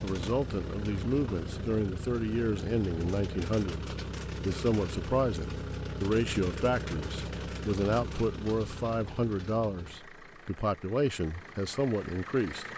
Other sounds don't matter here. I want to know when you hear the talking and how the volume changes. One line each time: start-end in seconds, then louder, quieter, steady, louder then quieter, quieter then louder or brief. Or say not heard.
0.0-12.7 steady.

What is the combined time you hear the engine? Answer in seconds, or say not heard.
13 s.